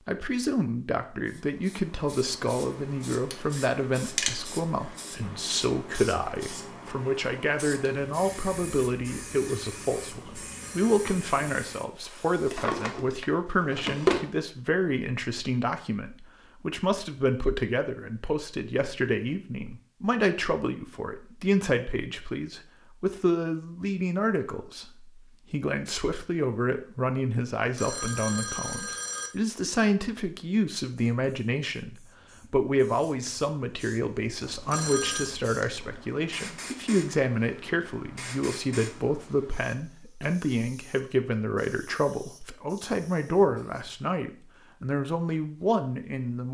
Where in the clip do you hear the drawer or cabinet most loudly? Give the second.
14 s.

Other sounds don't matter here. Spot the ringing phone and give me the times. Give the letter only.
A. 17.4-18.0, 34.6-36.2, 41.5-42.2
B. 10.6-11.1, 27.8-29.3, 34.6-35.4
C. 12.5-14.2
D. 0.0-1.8
B.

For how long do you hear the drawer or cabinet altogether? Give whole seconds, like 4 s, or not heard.
2 s.